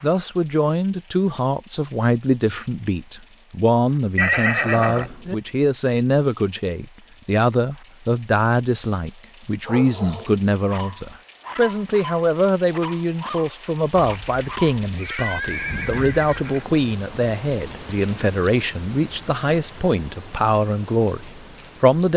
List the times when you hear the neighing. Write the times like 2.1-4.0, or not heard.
4.2-5.3, 13.9-16.6.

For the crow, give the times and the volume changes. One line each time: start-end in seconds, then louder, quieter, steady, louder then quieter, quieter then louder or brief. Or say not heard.
not heard.